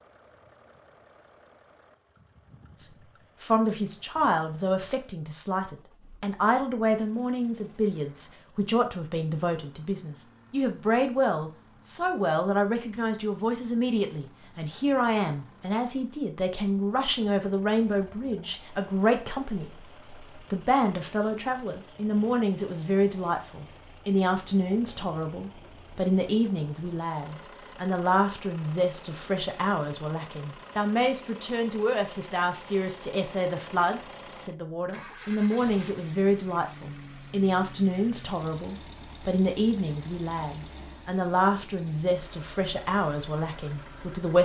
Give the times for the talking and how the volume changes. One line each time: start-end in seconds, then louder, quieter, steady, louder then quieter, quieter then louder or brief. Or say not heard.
2.8-44.4 steady.